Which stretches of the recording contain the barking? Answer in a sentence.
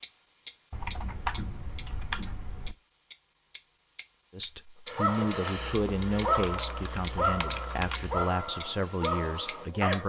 The barking can be heard from 4.8 to 10.0 s.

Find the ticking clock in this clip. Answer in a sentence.
You can hear the ticking clock from 0.0 to 8.0 s and from 8.6 to 10.0 s.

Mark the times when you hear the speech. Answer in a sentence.
You can hear the speech from 4.3 to 10.0 s.